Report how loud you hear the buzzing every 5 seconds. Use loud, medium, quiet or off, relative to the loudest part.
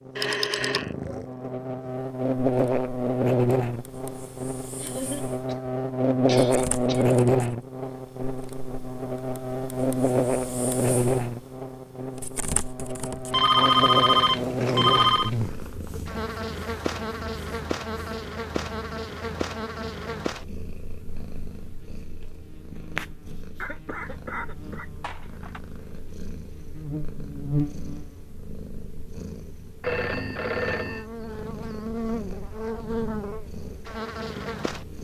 loud, loud, loud, medium, quiet, medium, medium.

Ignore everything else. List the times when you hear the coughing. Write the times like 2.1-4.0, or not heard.
4.8-7.2, 14.6-16.0, 23.6-25.6.